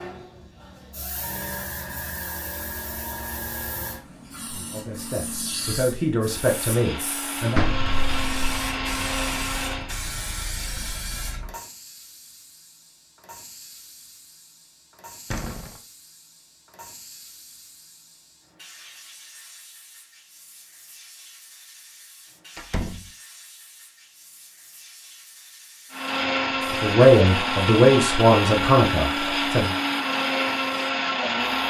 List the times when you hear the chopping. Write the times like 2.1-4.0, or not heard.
not heard.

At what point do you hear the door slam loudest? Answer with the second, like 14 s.
8 s.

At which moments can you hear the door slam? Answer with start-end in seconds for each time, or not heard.
7.5-8.6, 15.3-15.8, 22.6-23.1.